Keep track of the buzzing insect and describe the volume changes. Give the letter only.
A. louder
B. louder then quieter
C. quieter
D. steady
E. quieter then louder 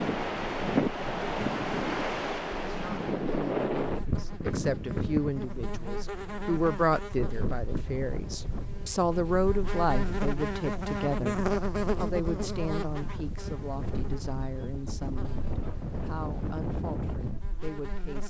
B.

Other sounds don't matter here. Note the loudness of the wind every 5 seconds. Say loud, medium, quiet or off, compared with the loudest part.
loud, medium, medium, medium.